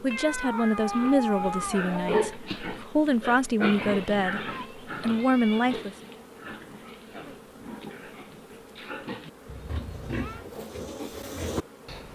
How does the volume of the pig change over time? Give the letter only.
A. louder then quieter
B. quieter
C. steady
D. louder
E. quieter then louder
E.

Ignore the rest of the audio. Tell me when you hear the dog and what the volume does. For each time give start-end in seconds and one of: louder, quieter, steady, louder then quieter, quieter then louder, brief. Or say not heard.
not heard.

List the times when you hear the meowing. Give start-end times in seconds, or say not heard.
0.1-2.1, 4.4-5.8, 9.4-10.4.